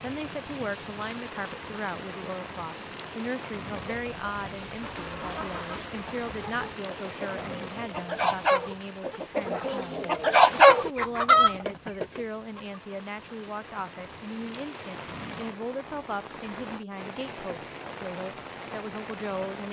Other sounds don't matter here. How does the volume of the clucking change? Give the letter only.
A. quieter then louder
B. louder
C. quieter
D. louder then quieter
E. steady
B.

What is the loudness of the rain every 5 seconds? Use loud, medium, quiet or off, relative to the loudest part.
loud, loud, medium, loud.